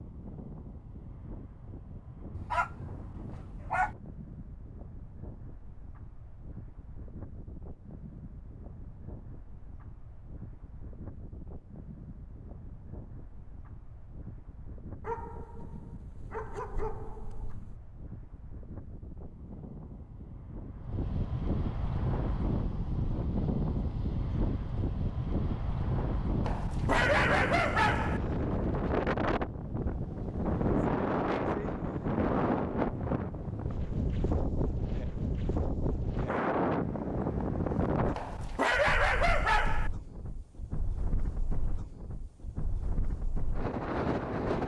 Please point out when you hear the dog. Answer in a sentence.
The dog can be heard from 2.4 to 4.0 s, from 15.0 to 17.8 s, from 26.4 to 28.2 s and from 38.1 to 39.9 s.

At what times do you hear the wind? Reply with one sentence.
You can hear the wind from 0.0 to 44.6 s.